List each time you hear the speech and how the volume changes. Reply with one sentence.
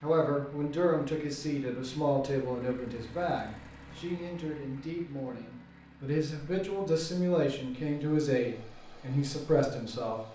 You can hear the speech from 0.0 to 10.2 s, getting quieter then louder.